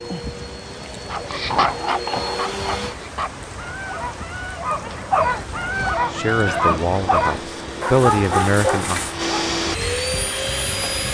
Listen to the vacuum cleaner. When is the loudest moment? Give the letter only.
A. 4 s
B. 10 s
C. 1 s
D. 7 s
B.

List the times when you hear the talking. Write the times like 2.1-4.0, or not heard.
6.1-9.0.